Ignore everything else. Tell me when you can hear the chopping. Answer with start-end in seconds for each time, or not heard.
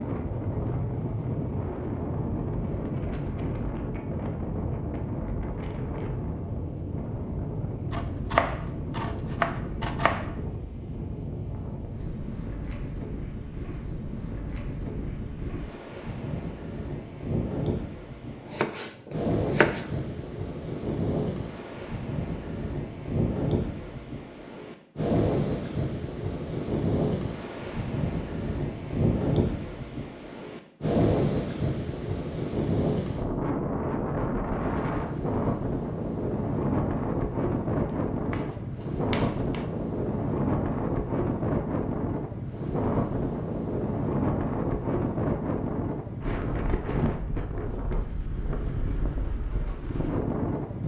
7.9-10.4, 18.2-19.9, 37.9-39.6.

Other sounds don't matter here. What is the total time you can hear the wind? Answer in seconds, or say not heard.
51 s.